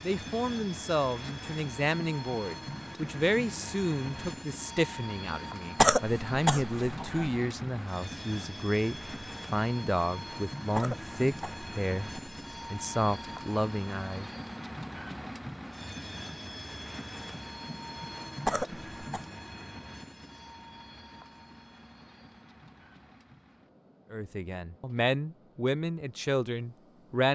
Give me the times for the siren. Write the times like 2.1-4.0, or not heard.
not heard.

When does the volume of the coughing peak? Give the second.
6 s.